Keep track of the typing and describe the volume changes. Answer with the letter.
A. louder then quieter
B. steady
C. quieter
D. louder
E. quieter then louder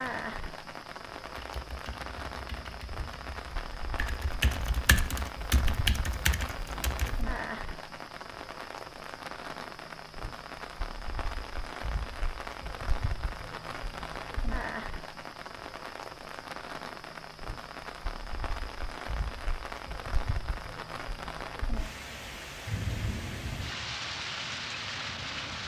D.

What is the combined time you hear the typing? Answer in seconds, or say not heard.
6 s.